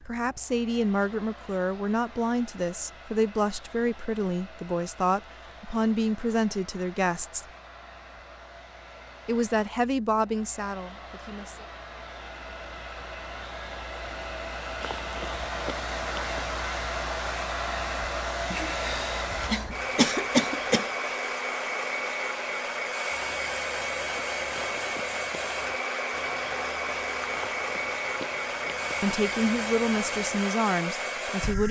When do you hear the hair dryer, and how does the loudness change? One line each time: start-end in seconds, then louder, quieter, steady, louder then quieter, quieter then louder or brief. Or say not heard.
0.0-31.6 louder.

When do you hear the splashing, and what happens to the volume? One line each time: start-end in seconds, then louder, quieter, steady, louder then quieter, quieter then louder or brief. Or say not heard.
not heard.